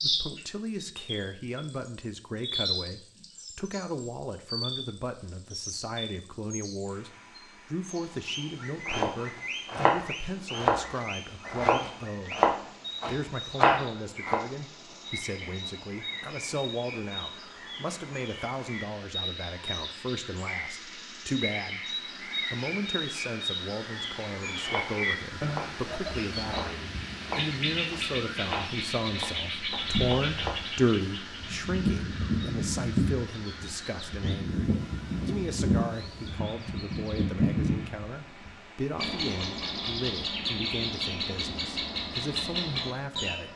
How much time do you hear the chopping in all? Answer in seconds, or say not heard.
12 s.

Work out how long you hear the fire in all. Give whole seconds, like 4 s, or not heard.
not heard.